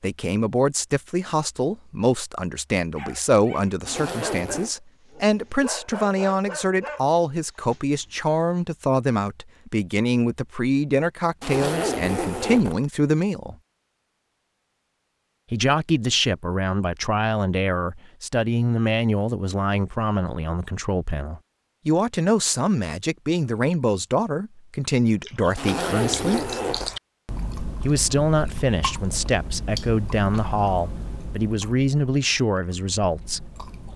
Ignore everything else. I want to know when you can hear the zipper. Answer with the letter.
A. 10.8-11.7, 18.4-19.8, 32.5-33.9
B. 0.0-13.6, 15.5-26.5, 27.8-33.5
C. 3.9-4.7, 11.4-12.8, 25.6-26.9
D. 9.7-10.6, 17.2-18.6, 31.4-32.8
C.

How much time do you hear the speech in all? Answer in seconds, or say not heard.
30 s.